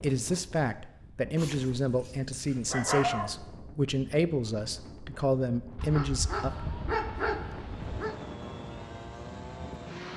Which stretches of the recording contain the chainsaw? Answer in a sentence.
You can hear the chainsaw from 7.7 to 10.1 s.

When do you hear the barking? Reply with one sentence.
You can hear the barking from 1.4 to 3.3 s and from 5.8 to 8.2 s.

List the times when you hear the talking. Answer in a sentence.
You can hear the talking from 0.0 to 6.5 s.